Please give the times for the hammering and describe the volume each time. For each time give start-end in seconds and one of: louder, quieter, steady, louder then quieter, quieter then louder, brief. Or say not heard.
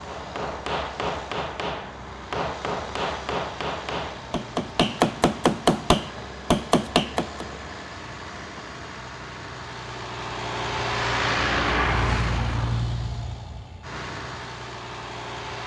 0.0-7.5 louder.